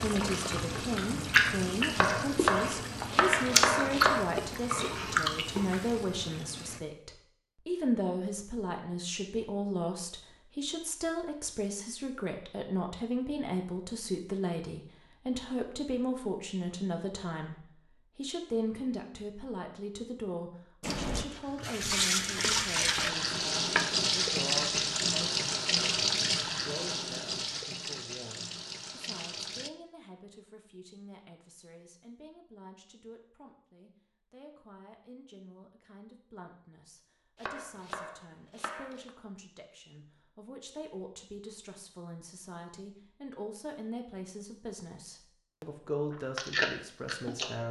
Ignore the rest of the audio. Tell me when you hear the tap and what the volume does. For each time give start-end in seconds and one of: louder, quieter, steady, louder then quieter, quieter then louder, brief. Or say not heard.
0.0-6.8 quieter
20.8-29.7 quieter.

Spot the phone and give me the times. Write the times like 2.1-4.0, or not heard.
not heard.